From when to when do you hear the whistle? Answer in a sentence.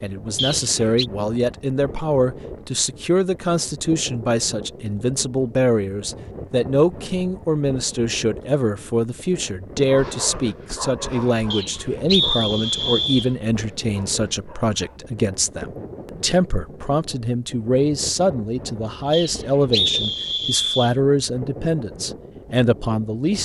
You can hear the whistle from 0.3 to 1.1 s, from 11.5 to 13.3 s and from 19.1 to 20.9 s.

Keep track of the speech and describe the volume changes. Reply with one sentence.
The volume of the speech stays about the same.